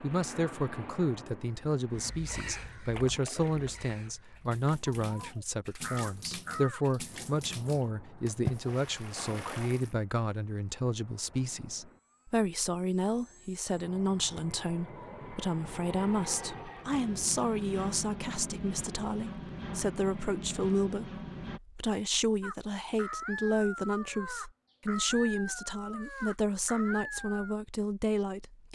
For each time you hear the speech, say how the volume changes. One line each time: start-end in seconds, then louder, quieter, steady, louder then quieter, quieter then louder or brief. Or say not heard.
0.0-28.7 steady.